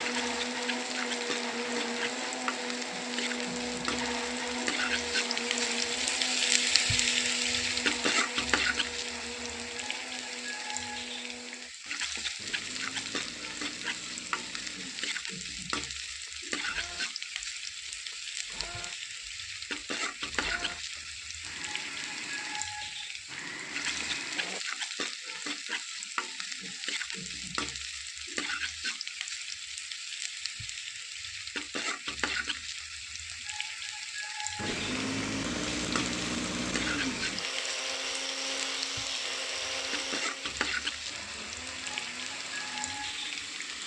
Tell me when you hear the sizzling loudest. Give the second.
7 s.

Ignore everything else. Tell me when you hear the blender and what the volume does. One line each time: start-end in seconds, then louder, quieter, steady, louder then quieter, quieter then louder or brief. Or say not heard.
0.0-24.6 quieter then louder
34.5-43.8 quieter.